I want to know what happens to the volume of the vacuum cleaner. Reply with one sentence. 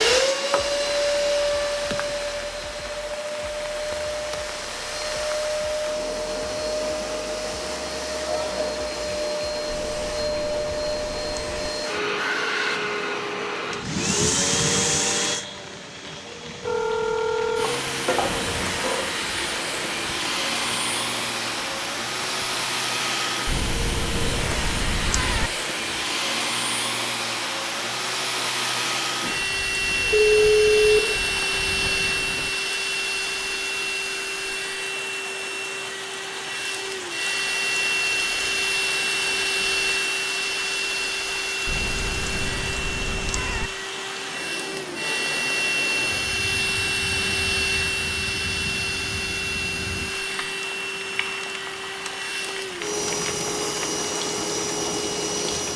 The loudness of the vacuum cleaner stays about the same.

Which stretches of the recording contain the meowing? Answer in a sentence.
The meowing can be heard from 9.7 to 11.7 s, from 23.4 to 25.5 s and from 41.6 to 43.7 s.